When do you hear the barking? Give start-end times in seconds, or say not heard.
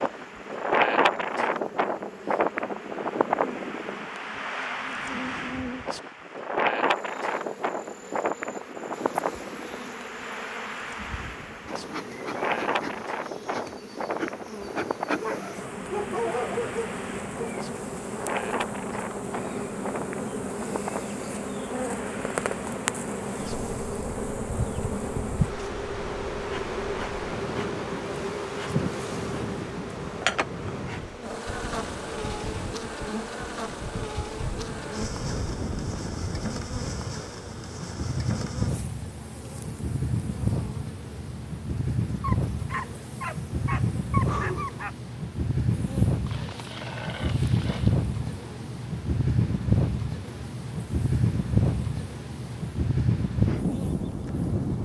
15.2-17.6, 42.2-44.9.